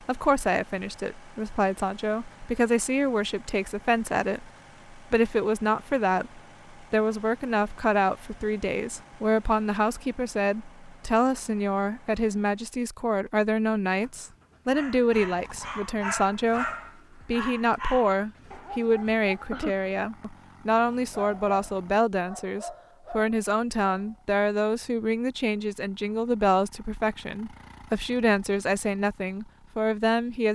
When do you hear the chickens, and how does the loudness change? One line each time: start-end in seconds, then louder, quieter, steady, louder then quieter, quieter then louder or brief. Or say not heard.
not heard.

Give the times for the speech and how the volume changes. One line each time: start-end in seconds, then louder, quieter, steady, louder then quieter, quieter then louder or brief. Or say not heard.
0.1-30.5 steady.